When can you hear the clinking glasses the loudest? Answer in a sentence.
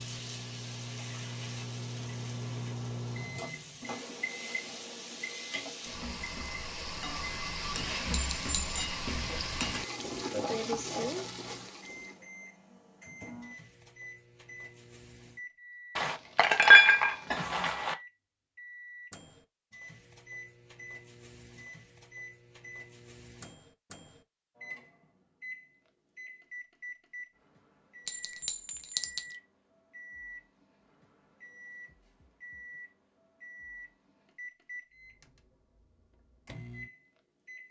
The volume of the clinking glasses peaks at 17 seconds.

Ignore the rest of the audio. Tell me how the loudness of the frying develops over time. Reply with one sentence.
The loudness of the frying goes up.